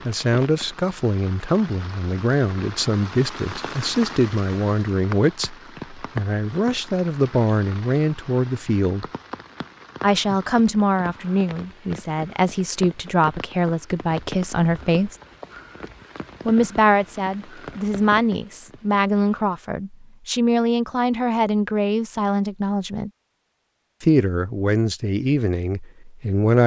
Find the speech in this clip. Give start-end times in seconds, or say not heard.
0.1-9.1, 10.0-15.2, 16.4-23.1, 24.0-26.6.